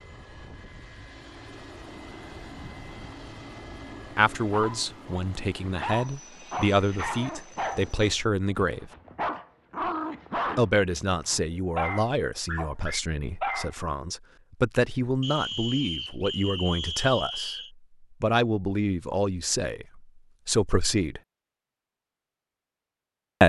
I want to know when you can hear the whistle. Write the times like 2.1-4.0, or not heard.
15.2-17.7.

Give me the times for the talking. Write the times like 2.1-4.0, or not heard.
4.2-8.9, 10.6-17.6, 18.2-21.2.